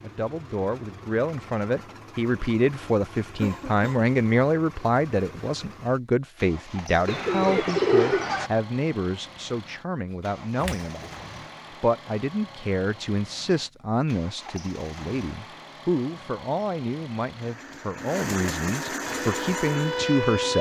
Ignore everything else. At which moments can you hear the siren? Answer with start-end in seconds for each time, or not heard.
19.0-20.5.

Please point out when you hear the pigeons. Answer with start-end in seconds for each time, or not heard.
7.0-8.5.